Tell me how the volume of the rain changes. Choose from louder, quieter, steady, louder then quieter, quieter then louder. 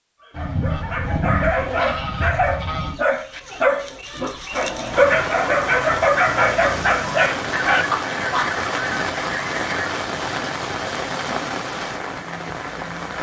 steady.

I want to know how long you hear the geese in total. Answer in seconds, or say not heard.
5 s.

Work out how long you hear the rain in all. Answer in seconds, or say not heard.
8 s.